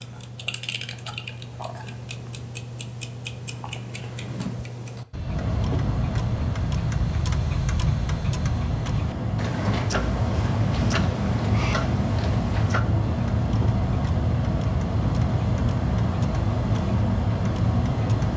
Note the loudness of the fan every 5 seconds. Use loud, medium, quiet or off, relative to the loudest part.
off, medium, loud, loud.